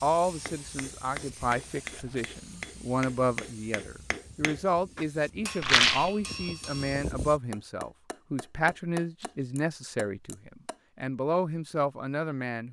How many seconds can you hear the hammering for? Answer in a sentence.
You can hear the hammering for 10 seconds altogether.